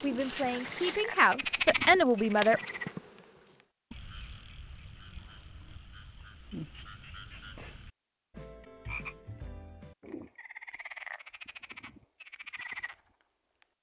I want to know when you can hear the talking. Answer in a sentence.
The talking can be heard from 0.0 to 2.6 s.